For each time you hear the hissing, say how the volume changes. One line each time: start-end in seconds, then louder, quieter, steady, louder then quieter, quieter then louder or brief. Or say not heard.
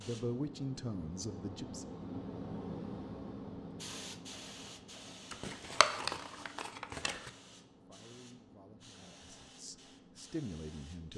0.0-11.1 quieter.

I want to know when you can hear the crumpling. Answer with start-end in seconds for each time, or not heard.
5.3-7.3.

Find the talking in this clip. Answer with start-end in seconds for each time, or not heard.
0.0-1.9, 7.7-11.1.